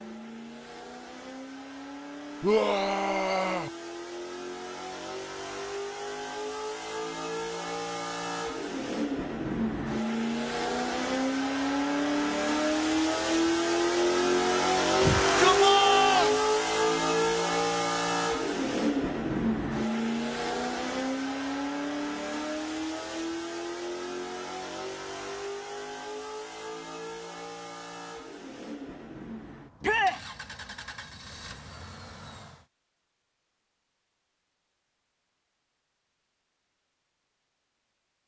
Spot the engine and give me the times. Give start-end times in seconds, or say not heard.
0.0-32.6.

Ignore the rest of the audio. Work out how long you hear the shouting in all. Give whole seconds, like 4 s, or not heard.
3 s.